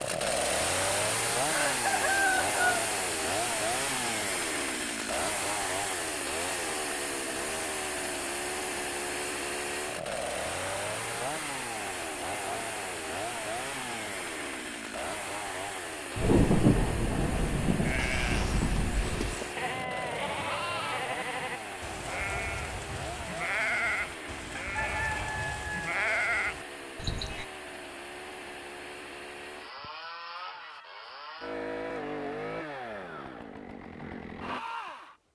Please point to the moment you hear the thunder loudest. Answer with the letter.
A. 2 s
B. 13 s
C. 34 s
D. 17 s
D.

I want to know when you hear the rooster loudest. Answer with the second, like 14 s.
2 s.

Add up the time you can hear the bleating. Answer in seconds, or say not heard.
10 s.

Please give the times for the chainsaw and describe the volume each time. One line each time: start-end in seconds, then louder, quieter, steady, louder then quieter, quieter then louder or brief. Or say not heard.
0.0-35.2 quieter.